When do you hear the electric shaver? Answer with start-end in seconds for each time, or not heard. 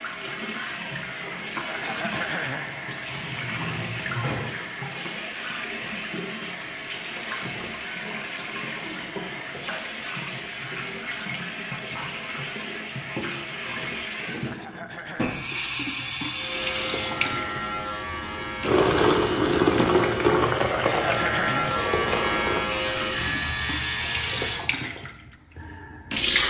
16.3-24.7.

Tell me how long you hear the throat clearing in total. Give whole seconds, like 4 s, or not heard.
3 s.